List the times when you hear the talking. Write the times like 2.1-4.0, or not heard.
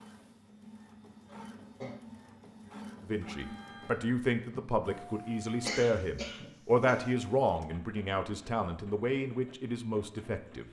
3.0-10.6.